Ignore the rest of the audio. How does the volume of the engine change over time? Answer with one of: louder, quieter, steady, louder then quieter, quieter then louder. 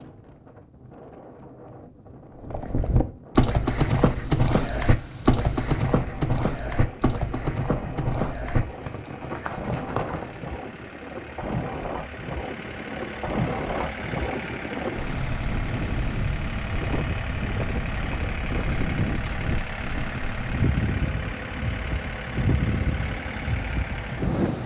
louder.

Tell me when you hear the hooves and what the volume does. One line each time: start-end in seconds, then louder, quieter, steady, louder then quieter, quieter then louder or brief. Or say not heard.
2.4-10.6 quieter.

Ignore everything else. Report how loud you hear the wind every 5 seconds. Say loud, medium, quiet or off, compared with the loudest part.
quiet, medium, loud, loud, loud.